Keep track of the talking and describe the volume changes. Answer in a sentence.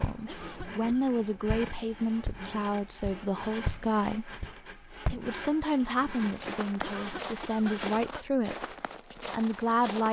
The volume of the talking stays about the same.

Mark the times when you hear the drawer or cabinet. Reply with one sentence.
The drawer or cabinet can't be heard in this clip.